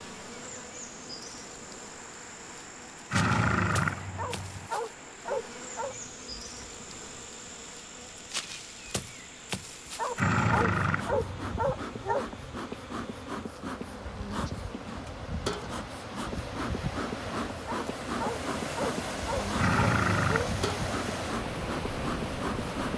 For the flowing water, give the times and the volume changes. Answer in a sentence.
The flowing water can be heard from 0.0 to 22.9 s, getting louder.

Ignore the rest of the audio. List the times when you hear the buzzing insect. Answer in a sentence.
You can hear the buzzing insect from 0.0 to 22.9 s.